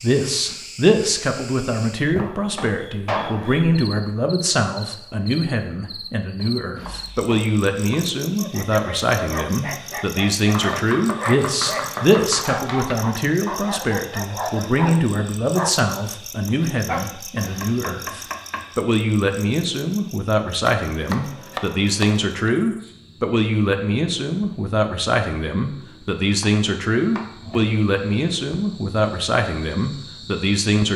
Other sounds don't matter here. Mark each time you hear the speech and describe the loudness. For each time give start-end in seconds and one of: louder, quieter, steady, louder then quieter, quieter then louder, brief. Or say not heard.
0.0-30.9 steady.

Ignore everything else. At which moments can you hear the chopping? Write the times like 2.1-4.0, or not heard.
2.1-3.5, 6.3-8.1, 10.5-12.9, 17.4-18.8, 20.6-22.5, 26.3-27.8.